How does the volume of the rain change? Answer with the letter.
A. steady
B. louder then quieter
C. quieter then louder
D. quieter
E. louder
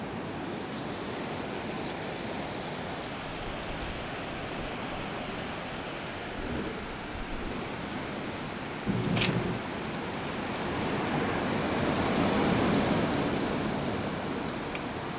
E.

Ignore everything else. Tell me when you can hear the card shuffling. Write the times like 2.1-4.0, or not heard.
8.8-9.6.